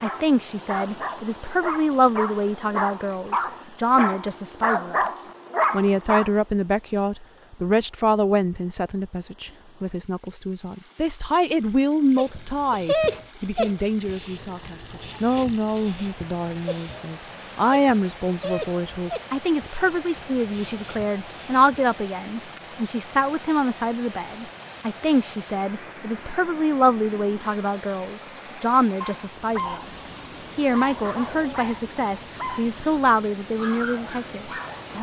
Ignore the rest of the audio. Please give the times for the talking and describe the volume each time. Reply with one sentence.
The talking can be heard from 0.0 to 34.9 s, at a steady volume.